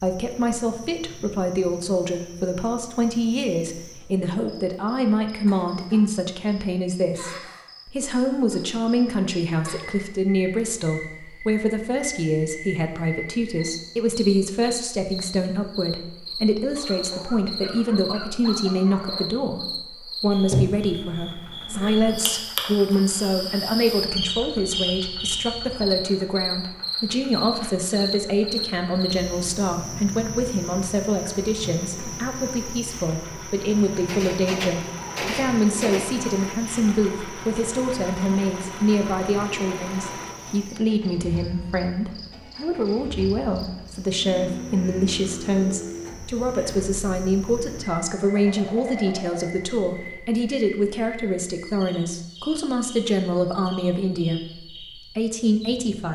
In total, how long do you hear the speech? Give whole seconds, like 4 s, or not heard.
56 s.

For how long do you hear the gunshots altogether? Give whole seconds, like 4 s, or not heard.
2 s.